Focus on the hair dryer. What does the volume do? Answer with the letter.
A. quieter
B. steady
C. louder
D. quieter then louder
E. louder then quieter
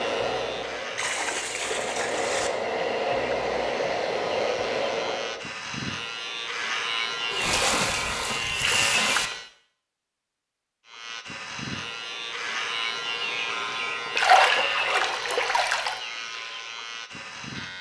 C.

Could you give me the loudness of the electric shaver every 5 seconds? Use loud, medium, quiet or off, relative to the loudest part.
medium, loud, loud, medium.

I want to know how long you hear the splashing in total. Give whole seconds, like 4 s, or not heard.
5 s.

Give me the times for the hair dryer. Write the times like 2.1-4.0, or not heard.
0.0-5.5.